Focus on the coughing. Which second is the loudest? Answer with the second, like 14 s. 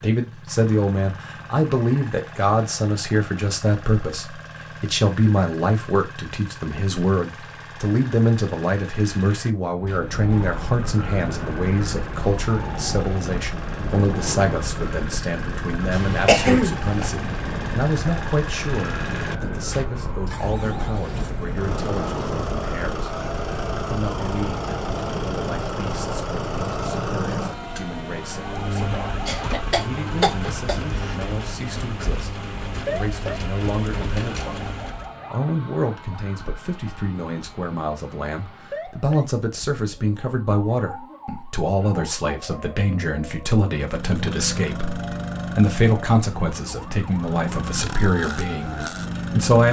16 s.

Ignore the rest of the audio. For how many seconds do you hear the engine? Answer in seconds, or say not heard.
41 s.